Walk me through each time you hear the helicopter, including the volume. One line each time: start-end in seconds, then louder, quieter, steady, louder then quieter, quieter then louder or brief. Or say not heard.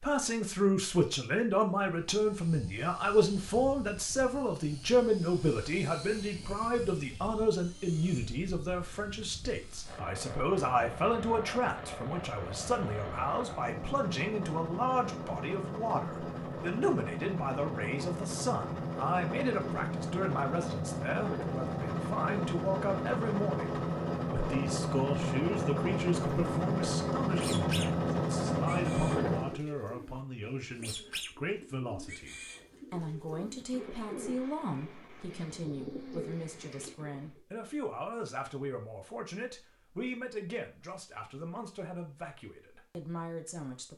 1.8-29.6 louder.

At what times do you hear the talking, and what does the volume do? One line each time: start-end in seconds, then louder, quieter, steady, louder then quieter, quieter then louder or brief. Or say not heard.
0.0-43.9 quieter.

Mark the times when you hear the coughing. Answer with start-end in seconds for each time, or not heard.
not heard.